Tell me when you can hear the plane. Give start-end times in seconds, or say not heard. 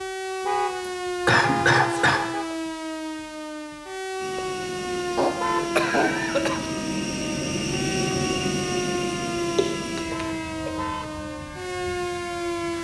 4.2-12.7.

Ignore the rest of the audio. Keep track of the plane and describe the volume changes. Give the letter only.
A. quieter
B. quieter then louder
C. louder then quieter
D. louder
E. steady
C.